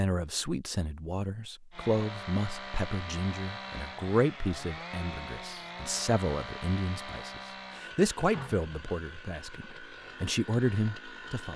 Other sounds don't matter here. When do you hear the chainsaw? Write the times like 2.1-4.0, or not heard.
1.7-11.5.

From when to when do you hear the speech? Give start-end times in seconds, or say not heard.
0.0-11.5.